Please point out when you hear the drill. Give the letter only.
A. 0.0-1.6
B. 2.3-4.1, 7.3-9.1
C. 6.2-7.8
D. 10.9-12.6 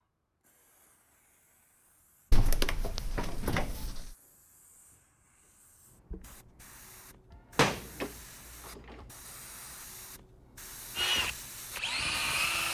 D.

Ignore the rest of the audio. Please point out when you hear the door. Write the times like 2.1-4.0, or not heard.
2.3-4.1, 7.3-9.1.